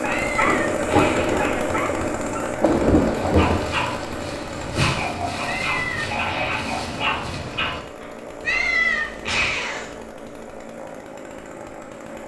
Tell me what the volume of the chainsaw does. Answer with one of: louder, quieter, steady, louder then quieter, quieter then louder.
quieter.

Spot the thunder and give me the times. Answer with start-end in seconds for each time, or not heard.
0.5-3.6.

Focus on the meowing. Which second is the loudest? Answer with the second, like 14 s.
9 s.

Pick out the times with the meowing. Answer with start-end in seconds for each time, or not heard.
0.1-1.5, 5.5-6.7, 8.4-9.9.